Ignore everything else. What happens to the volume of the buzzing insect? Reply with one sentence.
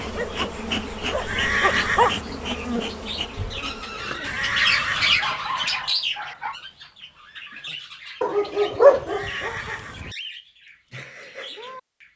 The loudness of the buzzing insect goes down.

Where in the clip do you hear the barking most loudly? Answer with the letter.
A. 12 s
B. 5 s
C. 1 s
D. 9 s
D.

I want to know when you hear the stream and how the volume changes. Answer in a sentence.
The stream can't be heard in this clip.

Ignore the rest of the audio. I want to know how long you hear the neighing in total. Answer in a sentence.
The neighing can be heard for 3 seconds in total.